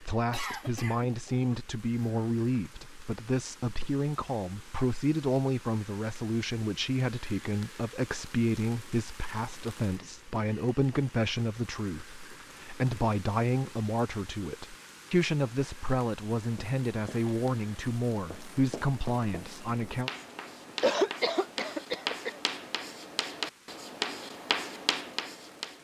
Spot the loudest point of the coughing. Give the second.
21 s.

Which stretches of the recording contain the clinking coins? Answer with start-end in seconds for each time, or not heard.
not heard.